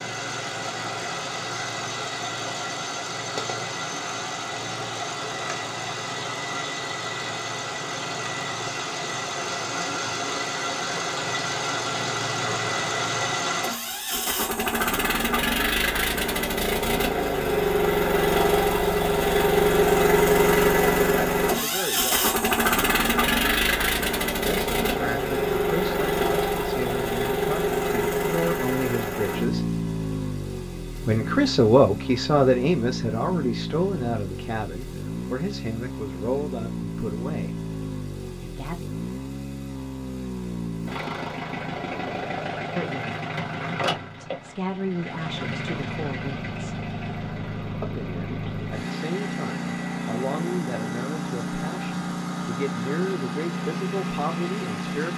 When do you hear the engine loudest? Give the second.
20 s.